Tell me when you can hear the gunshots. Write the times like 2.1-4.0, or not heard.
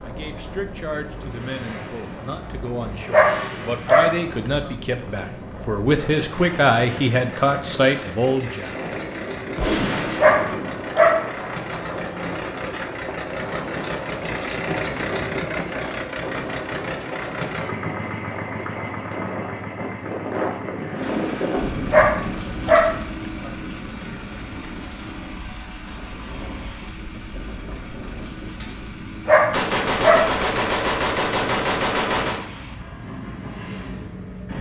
9.6-10.8, 29.5-32.5.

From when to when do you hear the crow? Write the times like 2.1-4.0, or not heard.
not heard.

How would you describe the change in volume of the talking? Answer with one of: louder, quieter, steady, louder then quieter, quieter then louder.
louder.